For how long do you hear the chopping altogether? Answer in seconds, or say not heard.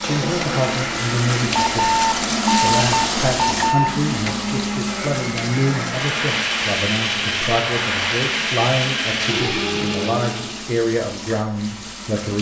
not heard.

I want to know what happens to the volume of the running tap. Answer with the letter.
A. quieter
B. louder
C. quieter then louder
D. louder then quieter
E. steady
A.